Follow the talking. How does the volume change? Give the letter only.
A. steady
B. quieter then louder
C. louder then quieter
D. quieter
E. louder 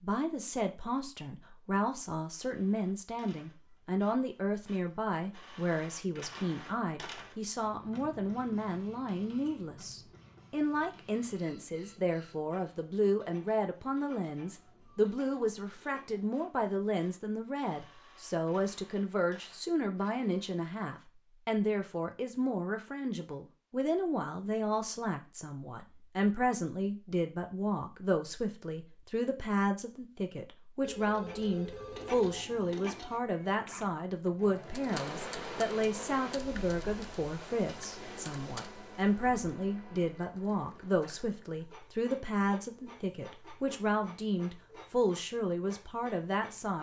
A.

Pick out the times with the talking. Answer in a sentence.
You can hear the talking from 0.0 to 46.7 s.